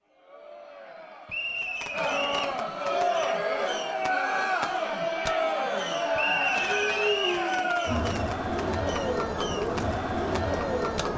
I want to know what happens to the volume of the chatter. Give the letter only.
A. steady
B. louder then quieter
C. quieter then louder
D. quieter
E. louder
E.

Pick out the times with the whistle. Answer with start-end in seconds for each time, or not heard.
1.2-2.5, 6.2-7.5.